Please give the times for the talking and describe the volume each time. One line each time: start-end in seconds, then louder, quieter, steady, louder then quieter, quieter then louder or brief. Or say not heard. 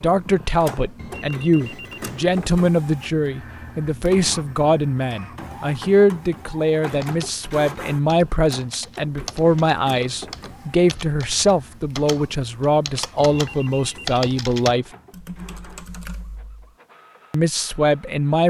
0.0-14.8 steady
17.3-18.4 brief.